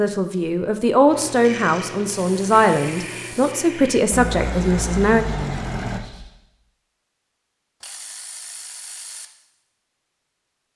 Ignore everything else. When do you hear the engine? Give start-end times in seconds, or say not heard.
4.1-6.0.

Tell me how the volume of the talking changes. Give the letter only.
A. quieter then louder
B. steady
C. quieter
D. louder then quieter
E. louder
B.